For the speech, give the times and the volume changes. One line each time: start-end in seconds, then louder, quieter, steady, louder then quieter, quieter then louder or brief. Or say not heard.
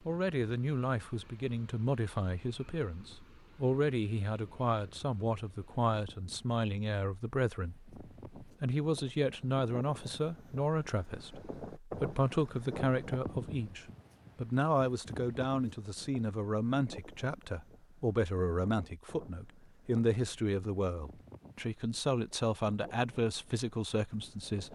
0.1-24.6 steady.